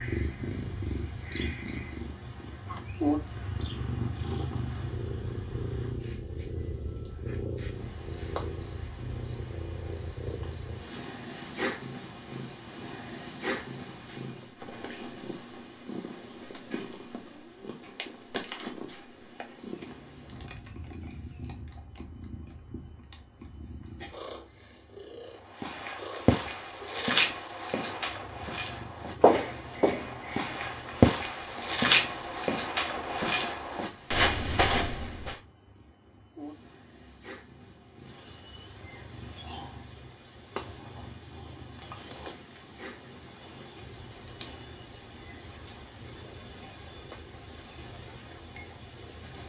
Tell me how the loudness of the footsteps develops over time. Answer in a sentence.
The loudness of the footsteps stays about the same.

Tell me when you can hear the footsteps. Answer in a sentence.
The footsteps can be heard from 25.6 to 35.4 s.